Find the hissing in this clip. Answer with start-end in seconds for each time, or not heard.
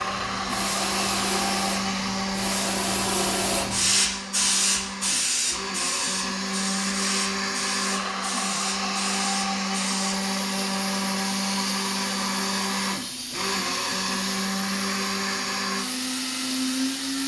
0.0-17.2.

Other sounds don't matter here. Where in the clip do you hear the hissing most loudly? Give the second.
4 s.